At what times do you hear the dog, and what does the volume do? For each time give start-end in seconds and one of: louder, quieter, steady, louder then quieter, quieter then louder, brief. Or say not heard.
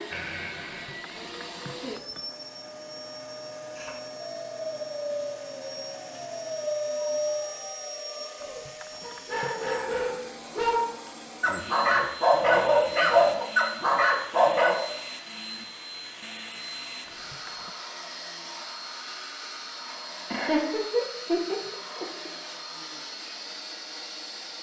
3.8-14.9 louder.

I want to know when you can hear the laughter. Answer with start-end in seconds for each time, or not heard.
0.1-0.9, 11.4-13.3, 20.3-22.3.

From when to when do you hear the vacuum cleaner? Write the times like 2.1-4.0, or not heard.
0.0-24.5.